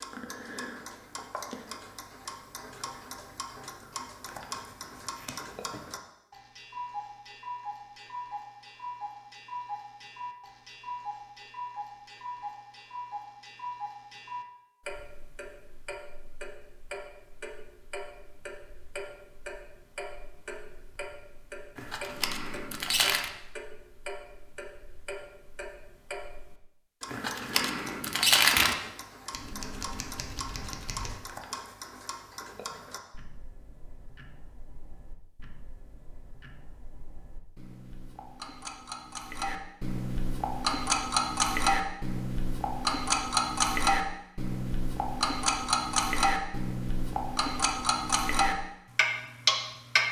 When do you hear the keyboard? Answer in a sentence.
You can't hear the keyboard here.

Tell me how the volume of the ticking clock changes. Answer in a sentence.
The loudness of the ticking clock goes up.